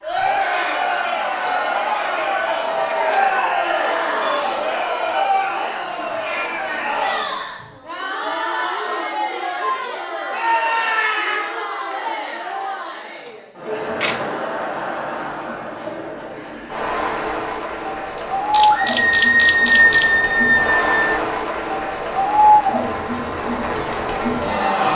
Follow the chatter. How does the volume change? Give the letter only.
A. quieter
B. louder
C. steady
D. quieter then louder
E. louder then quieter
D.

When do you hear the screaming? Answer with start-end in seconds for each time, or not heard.
3.0-4.4, 10.3-11.4, 18.7-21.1.